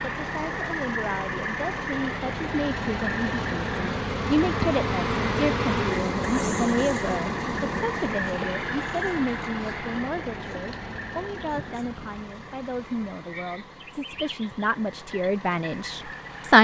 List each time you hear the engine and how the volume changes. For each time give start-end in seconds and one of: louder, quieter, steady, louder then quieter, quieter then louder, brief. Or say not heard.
0.0-16.5 quieter.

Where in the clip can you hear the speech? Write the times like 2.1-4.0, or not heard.
0.0-16.5.